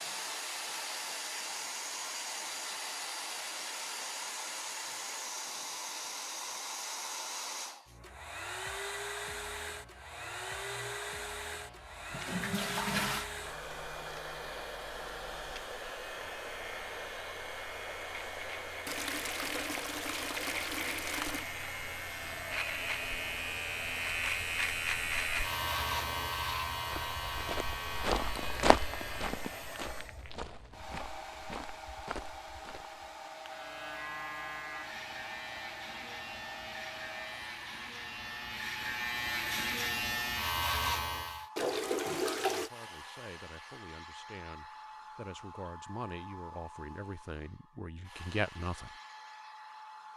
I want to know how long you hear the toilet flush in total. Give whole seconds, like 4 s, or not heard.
5 s.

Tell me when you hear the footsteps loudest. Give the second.
29 s.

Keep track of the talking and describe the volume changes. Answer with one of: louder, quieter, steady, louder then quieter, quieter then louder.
louder.